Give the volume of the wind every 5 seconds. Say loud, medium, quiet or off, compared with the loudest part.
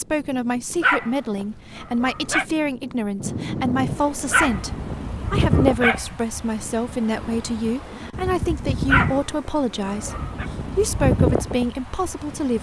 medium, loud, loud.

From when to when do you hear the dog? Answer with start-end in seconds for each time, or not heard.
0.8-2.5, 4.3-6.2, 8.8-10.4.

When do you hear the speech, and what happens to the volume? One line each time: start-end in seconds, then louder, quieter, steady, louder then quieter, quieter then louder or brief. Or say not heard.
0.0-12.5 steady.